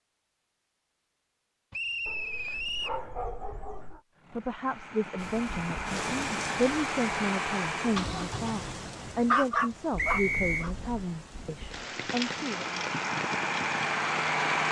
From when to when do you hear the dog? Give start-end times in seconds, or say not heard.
2.0-4.0, 9.1-10.7.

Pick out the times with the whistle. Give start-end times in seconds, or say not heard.
1.7-3.0, 9.9-10.7.